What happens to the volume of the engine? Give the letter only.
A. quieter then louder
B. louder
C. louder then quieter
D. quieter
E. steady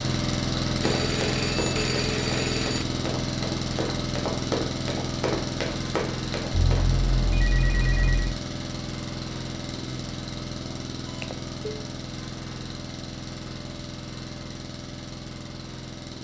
D.